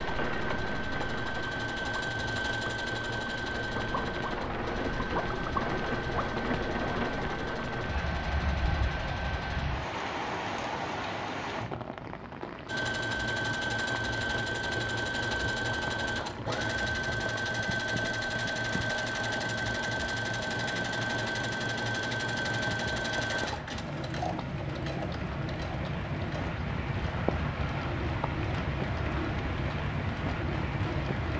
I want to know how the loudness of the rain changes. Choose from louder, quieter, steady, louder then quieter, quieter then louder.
quieter then louder.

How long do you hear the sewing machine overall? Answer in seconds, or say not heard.
28 s.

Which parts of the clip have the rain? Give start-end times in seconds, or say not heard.
0.0-31.3.